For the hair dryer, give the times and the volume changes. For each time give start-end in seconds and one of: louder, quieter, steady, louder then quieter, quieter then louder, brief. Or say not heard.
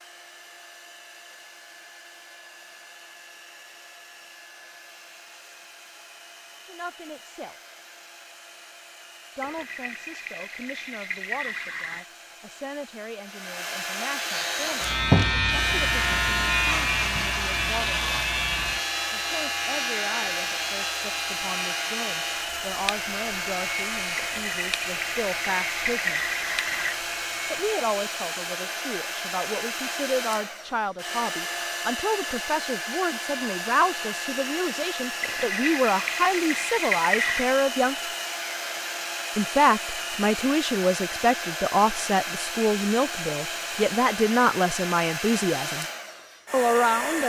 0.0-47.2 louder.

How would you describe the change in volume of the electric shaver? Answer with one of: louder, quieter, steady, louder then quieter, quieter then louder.
quieter.